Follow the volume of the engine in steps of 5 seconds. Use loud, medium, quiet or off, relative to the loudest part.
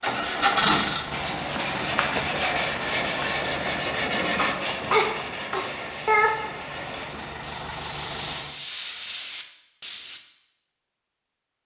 loud, medium, off.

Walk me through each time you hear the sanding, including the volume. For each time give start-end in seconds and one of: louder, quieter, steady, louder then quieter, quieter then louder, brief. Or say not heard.
1.1-10.2 quieter then louder.